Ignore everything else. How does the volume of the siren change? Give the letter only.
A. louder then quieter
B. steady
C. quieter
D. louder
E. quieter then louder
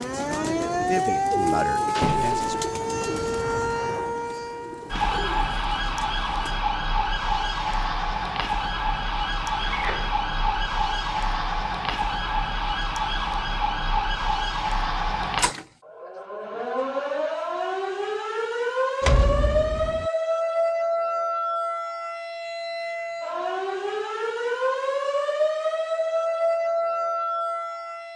B.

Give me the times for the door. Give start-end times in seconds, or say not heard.
1.9-2.5, 9.6-10.2, 19.0-20.1.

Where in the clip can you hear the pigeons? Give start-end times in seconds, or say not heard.
0.0-6.6.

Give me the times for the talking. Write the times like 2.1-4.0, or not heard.
0.1-2.5.